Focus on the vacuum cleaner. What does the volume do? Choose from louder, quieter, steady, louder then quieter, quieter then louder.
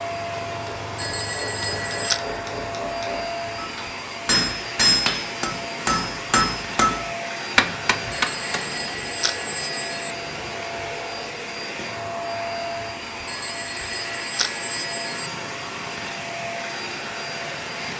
steady.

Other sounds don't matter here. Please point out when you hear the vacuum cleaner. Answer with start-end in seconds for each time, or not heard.
0.0-17.9.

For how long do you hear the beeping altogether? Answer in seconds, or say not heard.
5 s.